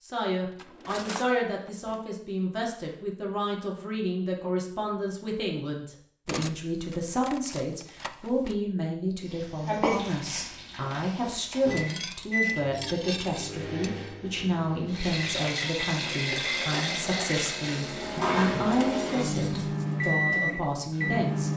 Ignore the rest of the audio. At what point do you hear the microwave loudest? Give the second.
20 s.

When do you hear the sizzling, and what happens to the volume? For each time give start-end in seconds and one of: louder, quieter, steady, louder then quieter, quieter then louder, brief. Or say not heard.
9.2-12.1 brief
14.8-19.8 quieter.